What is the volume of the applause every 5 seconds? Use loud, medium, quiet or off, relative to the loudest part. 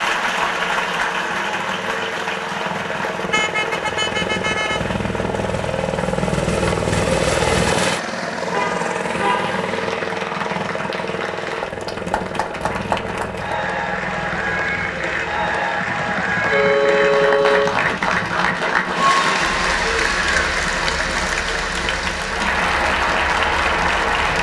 medium, quiet, medium, loud, loud.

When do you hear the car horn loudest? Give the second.
17 s.